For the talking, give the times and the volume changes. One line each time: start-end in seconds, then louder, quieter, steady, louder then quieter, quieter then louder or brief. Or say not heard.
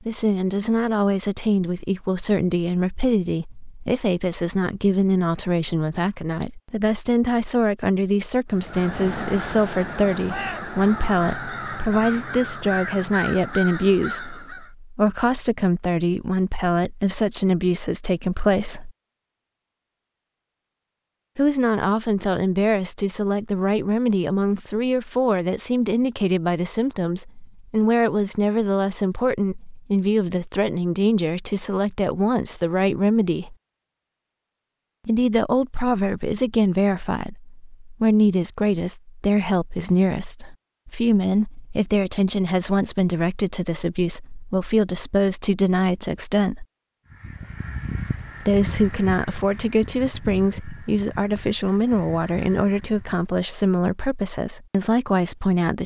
0.1-18.9 steady
21.4-33.5 steady
35.0-46.6 steady
48.4-55.8 steady.